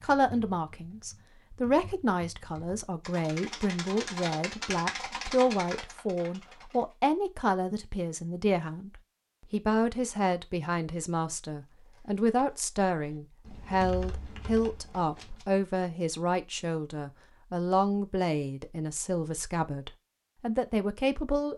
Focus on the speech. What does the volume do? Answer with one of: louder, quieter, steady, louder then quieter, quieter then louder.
steady.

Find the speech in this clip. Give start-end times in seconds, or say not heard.
0.0-21.5.